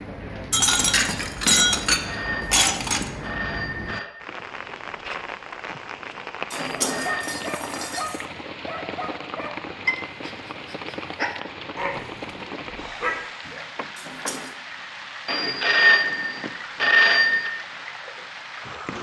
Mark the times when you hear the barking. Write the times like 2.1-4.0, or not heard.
6.7-13.7.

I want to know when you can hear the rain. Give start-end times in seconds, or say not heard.
0.0-18.9.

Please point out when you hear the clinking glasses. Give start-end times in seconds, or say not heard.
0.5-3.1, 6.5-8.2, 13.9-14.5.